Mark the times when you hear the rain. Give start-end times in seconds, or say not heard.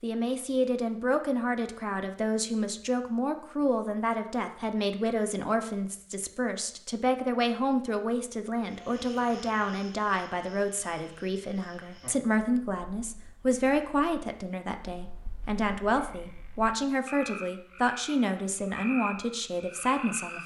not heard.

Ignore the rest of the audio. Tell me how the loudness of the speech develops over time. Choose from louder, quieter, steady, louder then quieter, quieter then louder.
steady.